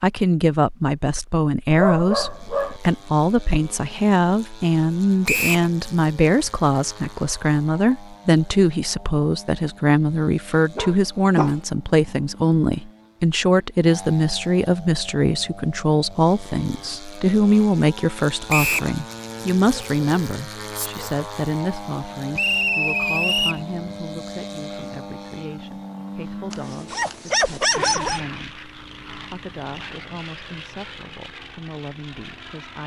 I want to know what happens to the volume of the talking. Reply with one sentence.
The volume of the talking goes down.